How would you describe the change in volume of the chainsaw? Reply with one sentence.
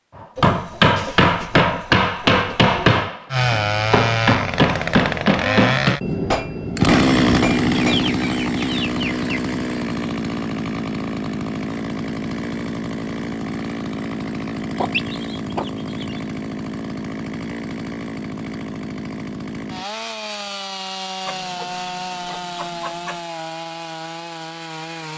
The loudness of the chainsaw goes down.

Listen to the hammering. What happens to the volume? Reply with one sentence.
The volume of the hammering goes down.